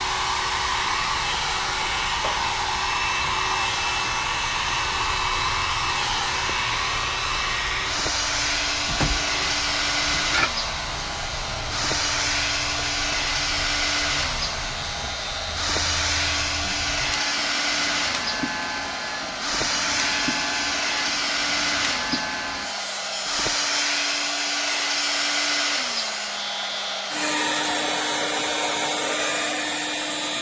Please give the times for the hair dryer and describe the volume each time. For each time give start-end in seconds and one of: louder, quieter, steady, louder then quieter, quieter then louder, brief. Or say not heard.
0.0-30.3 steady.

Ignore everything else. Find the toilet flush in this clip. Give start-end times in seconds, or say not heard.
8.8-10.5.